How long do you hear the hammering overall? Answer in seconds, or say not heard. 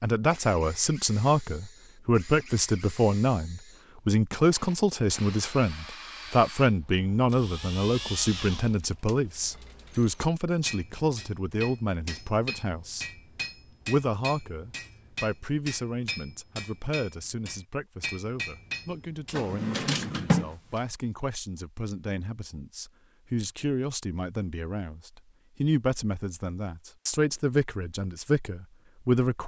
9 s.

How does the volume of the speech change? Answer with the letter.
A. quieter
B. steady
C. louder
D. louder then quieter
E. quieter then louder
E.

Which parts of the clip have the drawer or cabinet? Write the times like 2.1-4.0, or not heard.
19.3-20.8.